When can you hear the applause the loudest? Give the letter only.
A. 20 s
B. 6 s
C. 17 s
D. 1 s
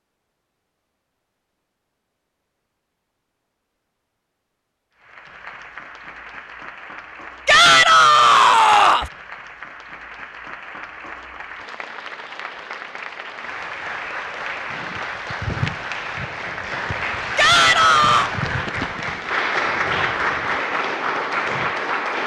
A.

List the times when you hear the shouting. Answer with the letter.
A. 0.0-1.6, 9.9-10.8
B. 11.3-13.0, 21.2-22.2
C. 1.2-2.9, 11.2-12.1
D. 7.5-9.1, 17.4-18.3
D.